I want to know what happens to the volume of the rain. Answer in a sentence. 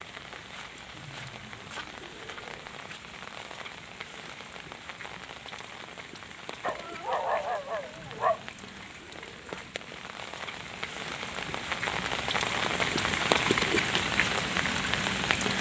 The loudness of the rain goes up.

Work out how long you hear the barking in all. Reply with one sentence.
You can hear the barking for 2 seconds altogether.